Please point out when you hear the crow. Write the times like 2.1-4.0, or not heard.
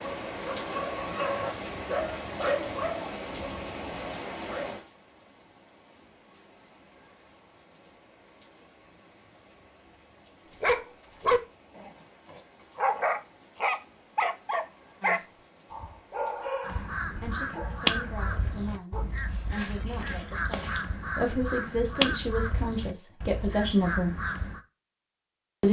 16.6-24.6.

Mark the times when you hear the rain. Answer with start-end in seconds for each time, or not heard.
0.0-16.6.